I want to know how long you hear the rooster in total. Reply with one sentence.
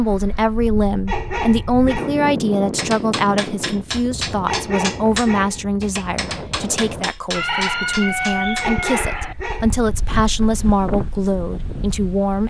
You can hear the rooster for 2 seconds altogether.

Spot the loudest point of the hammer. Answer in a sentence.
The loudest moment of the hammer is at 5 seconds.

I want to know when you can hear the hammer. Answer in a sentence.
The hammer can be heard from 2.8 to 9.2 s.